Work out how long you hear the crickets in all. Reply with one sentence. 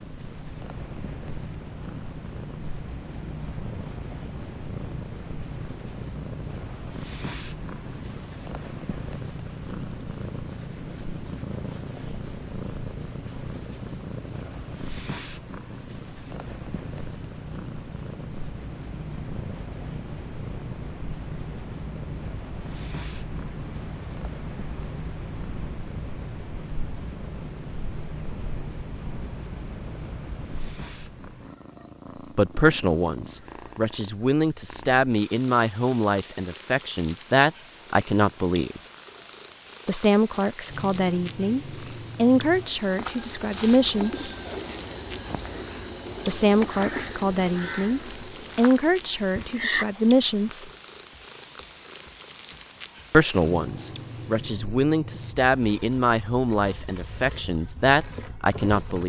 The crickets can be heard for 59 seconds in total.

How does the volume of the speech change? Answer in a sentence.
The volume of the speech stays about the same.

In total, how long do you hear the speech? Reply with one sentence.
The speech can be heard for 21 seconds in total.